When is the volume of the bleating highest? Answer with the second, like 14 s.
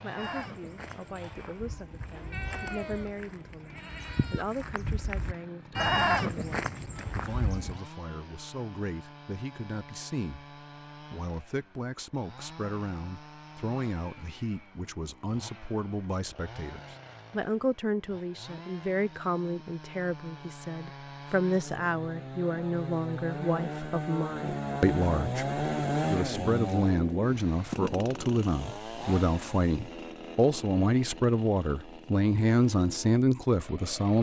6 s.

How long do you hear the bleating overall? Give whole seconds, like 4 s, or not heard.
8 s.